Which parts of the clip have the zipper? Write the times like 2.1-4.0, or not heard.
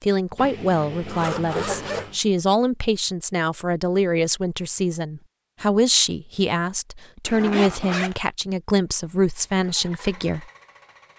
0.3-2.2, 7.2-8.2.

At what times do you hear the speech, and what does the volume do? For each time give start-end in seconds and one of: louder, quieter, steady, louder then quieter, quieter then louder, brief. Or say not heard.
0.0-10.4 steady.